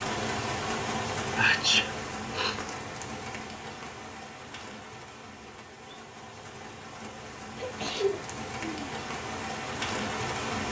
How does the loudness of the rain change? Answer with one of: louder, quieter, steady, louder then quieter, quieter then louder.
quieter then louder.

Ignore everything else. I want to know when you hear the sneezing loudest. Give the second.
2 s.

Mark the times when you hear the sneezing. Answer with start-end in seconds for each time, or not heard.
1.4-2.5, 7.5-8.9.